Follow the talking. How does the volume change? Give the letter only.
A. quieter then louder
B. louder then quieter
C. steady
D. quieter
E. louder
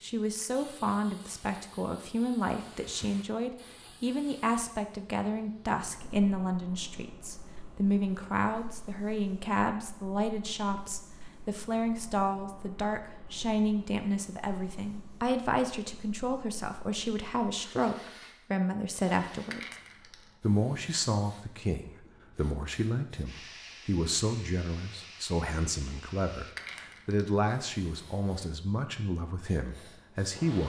C.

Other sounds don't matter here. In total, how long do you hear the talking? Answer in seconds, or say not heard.
30 s.